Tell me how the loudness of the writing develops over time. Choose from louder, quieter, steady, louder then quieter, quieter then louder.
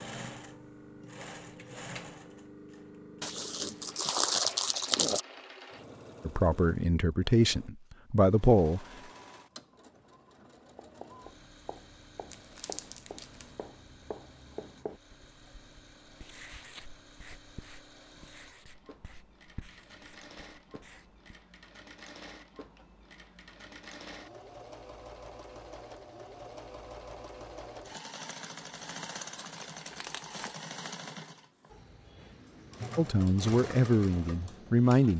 louder then quieter.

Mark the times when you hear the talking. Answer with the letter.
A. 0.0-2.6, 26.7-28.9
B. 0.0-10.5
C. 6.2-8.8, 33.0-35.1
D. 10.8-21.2
C.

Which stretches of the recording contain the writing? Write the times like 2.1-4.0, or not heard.
10.8-21.2.